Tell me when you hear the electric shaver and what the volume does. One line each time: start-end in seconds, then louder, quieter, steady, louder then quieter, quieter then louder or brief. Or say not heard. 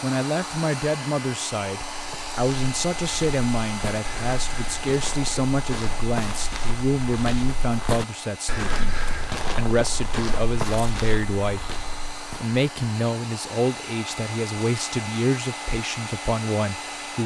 not heard.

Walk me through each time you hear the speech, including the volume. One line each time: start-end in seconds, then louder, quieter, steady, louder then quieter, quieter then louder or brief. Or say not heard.
0.0-11.6 steady
12.2-17.2 steady.